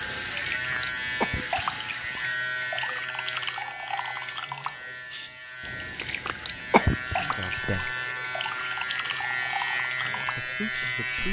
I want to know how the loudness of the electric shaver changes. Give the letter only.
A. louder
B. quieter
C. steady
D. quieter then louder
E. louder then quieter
D.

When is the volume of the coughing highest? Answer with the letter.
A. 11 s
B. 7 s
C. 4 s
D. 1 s
B.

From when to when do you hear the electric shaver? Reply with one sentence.
The electric shaver can be heard from 0.0 to 11.2 s.